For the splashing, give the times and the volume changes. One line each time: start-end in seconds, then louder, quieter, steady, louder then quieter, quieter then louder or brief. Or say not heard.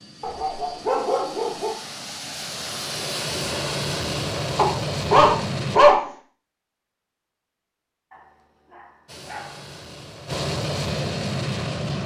not heard.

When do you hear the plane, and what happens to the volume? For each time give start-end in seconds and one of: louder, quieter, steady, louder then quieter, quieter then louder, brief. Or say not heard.
0.0-5.8 louder
9.1-12.0 brief.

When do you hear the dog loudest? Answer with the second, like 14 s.
6 s.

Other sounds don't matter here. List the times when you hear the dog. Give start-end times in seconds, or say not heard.
0.2-1.8, 4.5-6.0, 8.1-9.6.